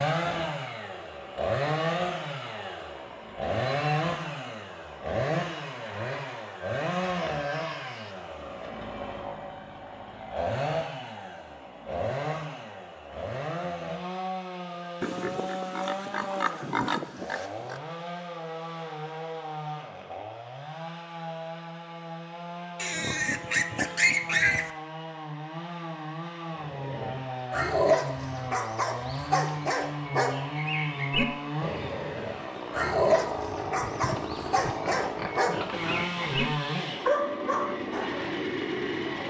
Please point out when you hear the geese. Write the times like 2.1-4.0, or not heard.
not heard.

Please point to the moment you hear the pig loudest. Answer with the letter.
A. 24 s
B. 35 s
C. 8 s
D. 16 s
A.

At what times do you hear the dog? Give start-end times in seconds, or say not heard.
26.6-38.1.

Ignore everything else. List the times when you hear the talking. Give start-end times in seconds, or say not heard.
not heard.